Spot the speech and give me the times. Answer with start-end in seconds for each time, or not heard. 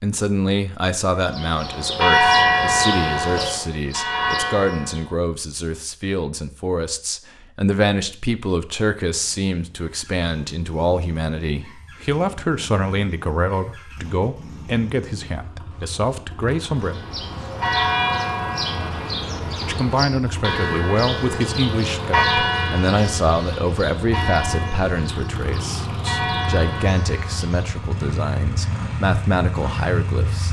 0.0-16.9, 19.6-30.4.